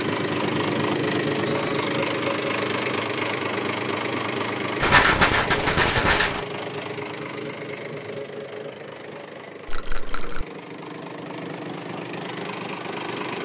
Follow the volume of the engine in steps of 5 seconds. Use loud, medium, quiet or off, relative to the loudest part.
loud, medium, medium.